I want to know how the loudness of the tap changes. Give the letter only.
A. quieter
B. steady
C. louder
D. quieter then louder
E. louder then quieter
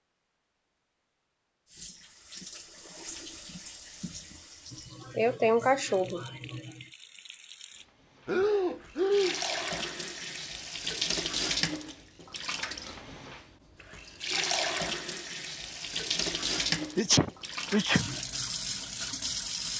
D.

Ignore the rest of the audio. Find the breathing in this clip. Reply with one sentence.
The breathing can be heard from 8.2 to 9.4 s.